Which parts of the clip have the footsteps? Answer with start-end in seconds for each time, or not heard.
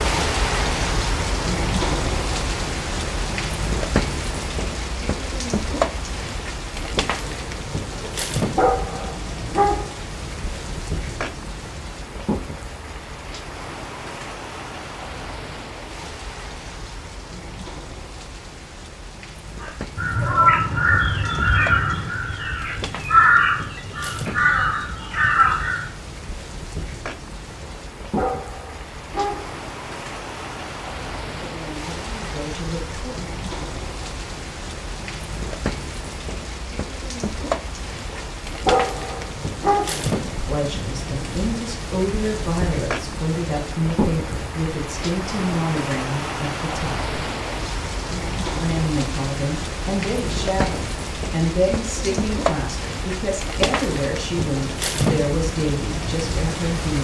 not heard.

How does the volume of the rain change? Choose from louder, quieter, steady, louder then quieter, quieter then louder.
quieter then louder.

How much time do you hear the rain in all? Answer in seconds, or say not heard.
57 s.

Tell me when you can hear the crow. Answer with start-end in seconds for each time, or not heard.
19.6-25.9.